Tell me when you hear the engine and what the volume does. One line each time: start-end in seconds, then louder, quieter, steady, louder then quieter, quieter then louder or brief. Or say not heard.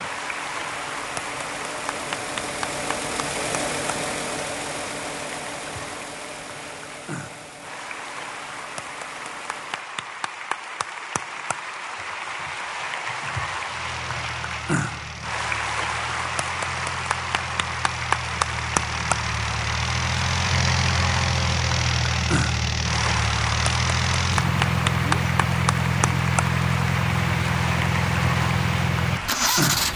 0.0-9.9 louder then quieter
13.7-29.9 louder.